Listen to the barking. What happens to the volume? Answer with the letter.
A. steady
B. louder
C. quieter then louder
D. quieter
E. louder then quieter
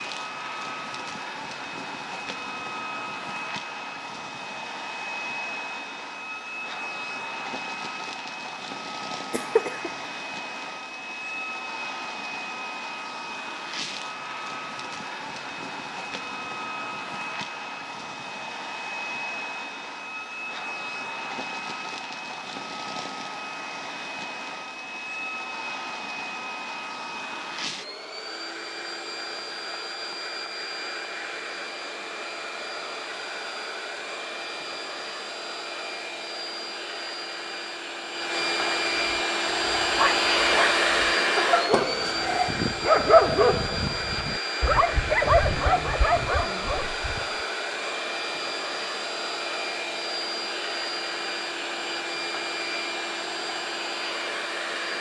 E.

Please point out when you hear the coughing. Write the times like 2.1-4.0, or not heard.
9.3-9.9, 41.7-42.5.